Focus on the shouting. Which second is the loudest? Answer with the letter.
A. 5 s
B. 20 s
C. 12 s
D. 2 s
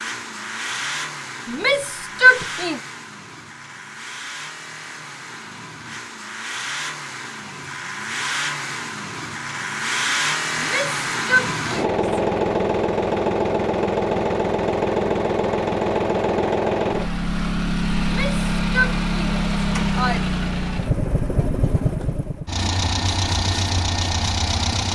D.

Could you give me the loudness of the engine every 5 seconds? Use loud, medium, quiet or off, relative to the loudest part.
medium, medium, loud, loud, loud.